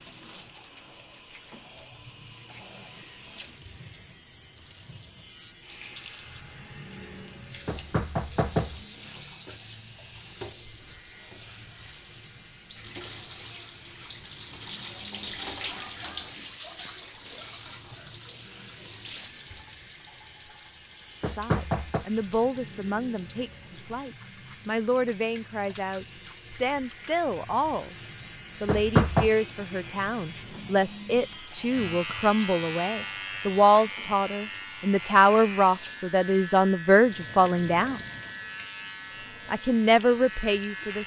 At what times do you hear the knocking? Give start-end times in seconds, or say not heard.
7.7-8.8, 21.2-22.1, 28.6-29.3.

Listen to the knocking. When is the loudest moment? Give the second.
29 s.